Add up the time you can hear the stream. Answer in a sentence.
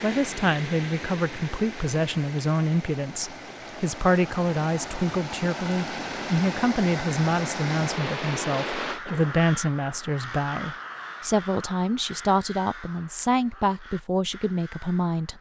You can hear the stream for 9 seconds altogether.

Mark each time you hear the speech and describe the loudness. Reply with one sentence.
The speech can be heard from 0.0 to 15.3 s, at a steady volume.